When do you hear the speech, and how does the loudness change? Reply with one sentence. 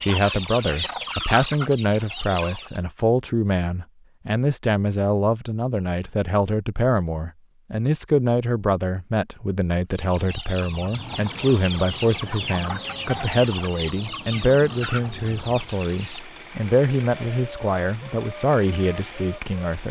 The speech can be heard from 0.1 to 19.8 s, at a steady volume.